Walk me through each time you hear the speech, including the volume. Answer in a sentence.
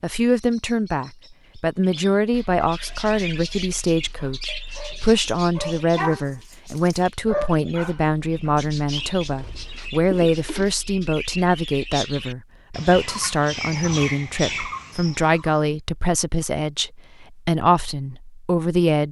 You can hear the speech from 0.0 to 19.0 s, at a steady volume.